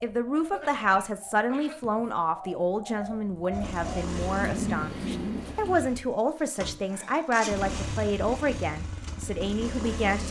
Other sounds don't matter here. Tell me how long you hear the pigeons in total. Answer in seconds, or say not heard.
6 s.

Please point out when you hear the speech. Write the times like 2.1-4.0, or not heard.
0.0-10.2.